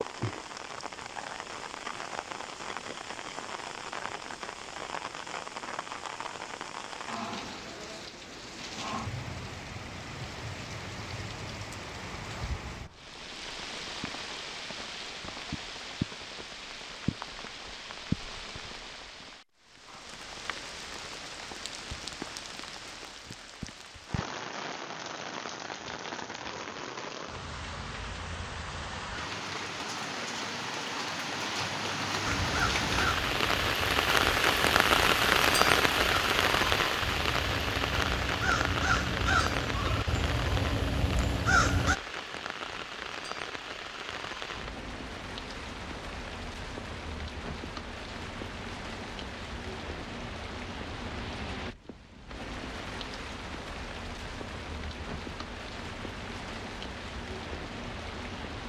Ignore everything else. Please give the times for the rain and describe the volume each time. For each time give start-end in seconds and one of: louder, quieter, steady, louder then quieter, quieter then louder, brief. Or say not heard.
0.0-58.6 louder then quieter.